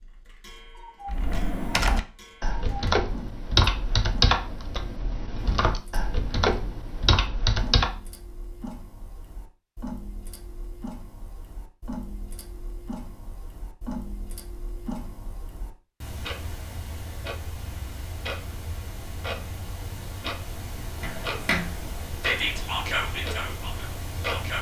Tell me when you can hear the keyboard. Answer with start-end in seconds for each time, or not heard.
1.1-8.0.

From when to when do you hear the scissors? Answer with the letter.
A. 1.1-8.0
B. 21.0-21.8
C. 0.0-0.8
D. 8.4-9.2
B.